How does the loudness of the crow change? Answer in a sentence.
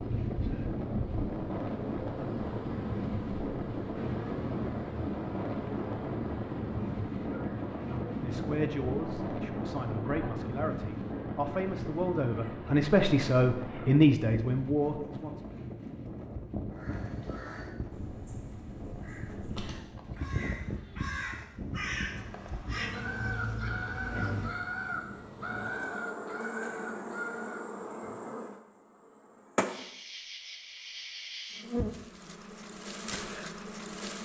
The loudness of the crow goes up.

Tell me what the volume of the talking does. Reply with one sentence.
The loudness of the talking goes up.